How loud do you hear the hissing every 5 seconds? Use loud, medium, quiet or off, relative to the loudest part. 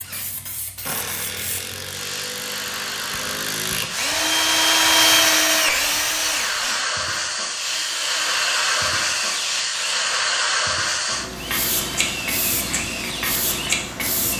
medium, loud, loud.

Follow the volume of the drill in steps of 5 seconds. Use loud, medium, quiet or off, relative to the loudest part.
loud, loud, medium.